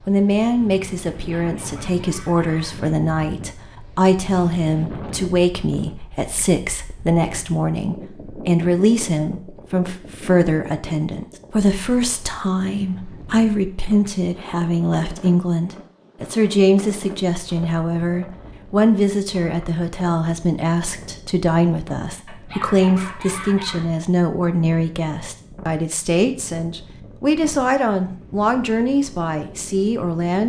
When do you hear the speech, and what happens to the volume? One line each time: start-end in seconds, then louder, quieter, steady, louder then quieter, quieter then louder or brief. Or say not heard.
0.1-30.4 steady.